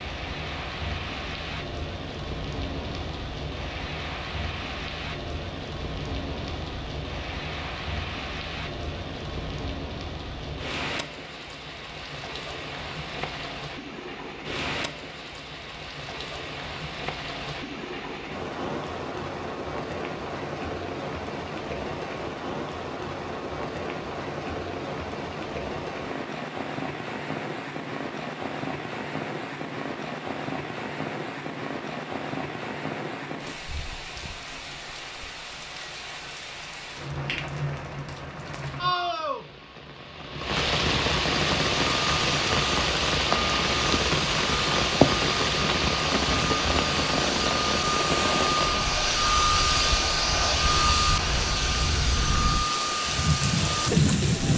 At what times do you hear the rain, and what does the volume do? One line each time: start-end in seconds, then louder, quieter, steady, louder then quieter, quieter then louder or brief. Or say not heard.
0.0-54.5 louder.